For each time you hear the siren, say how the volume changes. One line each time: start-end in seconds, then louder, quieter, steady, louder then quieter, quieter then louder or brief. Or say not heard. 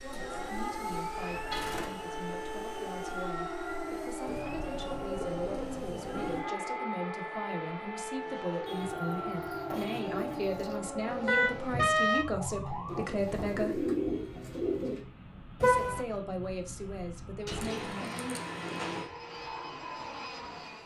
0.0-13.1 steady.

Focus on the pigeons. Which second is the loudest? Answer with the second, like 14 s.
14 s.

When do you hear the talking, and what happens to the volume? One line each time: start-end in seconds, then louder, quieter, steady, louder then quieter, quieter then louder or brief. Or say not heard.
0.0-13.8 louder
15.6-18.1 brief.